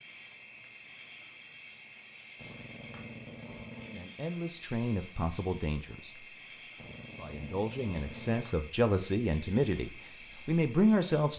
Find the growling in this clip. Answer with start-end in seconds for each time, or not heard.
2.4-4.1, 6.8-8.4.